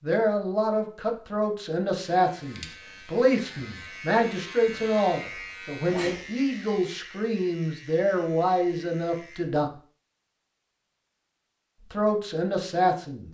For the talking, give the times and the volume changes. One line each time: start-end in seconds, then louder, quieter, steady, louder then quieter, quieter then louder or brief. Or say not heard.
0.0-9.7 steady
11.9-13.2 brief.